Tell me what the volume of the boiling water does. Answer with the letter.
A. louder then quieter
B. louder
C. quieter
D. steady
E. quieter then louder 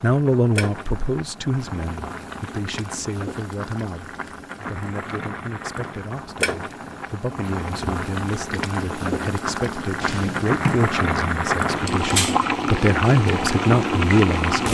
B.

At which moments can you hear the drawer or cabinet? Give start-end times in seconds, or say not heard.
10.0-10.9.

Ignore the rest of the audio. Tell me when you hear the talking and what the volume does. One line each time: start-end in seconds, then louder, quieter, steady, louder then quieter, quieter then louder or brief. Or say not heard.
0.0-14.7 quieter then louder.